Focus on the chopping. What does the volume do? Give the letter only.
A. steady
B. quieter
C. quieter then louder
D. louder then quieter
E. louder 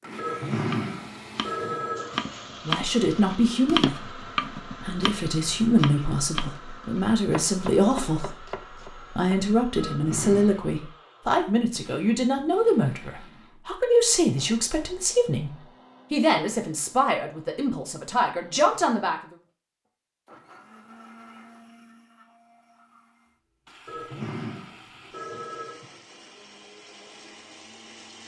D.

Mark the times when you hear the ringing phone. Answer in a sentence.
The ringing phone can be heard from 0.1 to 2.3 s, from 9.8 to 10.7 s and from 23.9 to 26.0 s.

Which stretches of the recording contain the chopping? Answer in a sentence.
The chopping can be heard from 0.7 to 9.3 s.